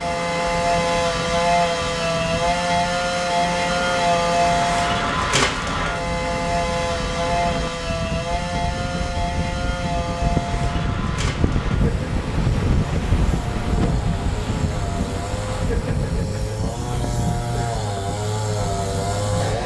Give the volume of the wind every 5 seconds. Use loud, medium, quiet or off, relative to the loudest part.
medium, medium, loud, medium.